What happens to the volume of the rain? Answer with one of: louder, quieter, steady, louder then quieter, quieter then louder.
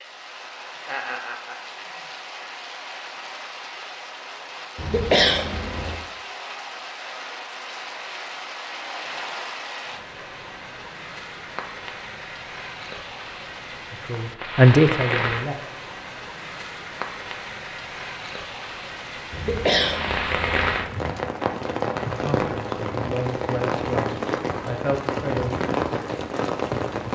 louder.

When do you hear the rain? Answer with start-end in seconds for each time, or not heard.
0.0-27.0.